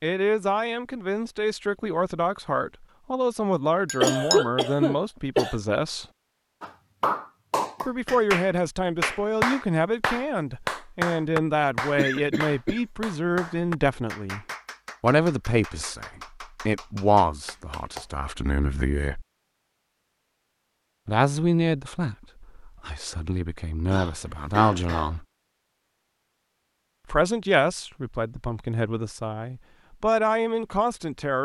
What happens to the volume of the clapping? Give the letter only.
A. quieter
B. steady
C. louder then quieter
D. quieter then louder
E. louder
A.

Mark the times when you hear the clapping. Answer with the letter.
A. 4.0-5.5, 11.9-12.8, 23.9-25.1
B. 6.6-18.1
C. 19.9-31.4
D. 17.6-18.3
B.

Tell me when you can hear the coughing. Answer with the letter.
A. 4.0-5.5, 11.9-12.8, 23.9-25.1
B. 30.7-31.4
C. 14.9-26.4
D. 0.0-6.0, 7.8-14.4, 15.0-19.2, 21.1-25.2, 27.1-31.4
A.